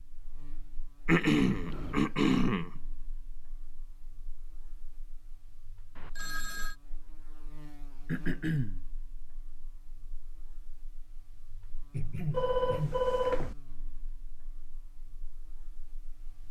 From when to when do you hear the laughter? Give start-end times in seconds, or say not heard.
not heard.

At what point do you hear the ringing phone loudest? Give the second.
13 s.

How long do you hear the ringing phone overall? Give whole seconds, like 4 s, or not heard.
3 s.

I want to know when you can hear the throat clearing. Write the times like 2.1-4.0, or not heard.
1.1-2.7, 8.1-8.8, 11.9-13.0.